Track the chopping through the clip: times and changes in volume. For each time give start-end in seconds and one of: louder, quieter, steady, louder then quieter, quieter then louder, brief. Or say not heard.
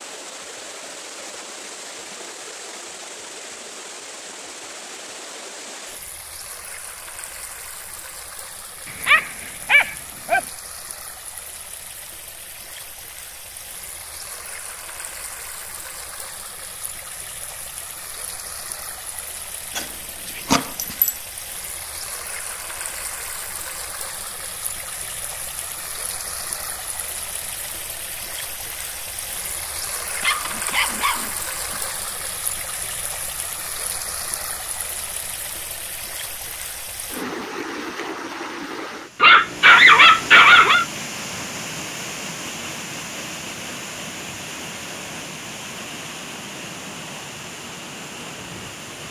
not heard.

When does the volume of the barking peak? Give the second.
40 s.